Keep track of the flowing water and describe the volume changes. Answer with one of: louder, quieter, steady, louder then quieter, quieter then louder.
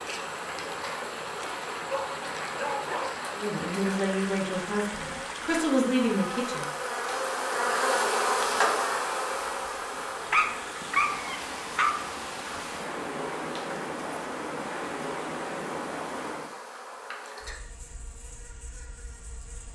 quieter then louder.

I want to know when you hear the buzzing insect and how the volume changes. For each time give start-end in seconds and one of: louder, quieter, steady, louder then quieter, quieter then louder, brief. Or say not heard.
0.0-19.7 louder then quieter.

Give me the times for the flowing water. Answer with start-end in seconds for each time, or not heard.
0.0-16.6.